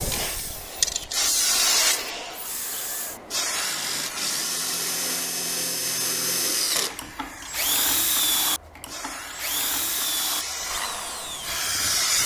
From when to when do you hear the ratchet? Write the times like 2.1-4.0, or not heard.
not heard.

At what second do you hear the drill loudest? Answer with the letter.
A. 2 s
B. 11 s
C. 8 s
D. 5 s
C.